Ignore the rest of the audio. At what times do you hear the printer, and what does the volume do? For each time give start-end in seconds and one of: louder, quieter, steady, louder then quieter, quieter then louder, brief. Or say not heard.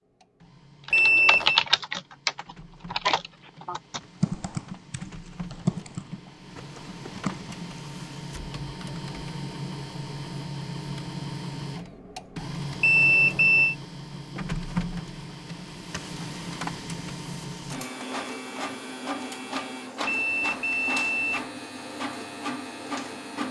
0.0-23.4 louder.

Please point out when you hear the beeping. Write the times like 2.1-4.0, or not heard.
0.9-1.6, 12.8-13.8, 20.1-21.4.